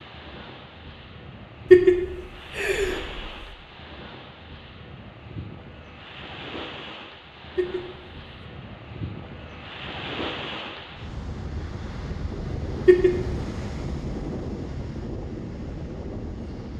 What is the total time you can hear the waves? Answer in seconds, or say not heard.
17 s.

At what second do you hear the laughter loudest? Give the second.
2 s.